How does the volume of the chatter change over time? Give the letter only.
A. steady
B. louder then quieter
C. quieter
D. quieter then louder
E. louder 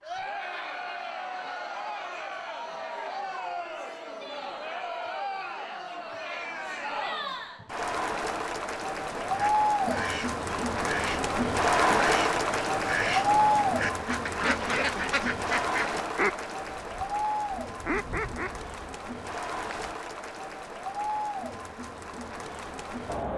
B.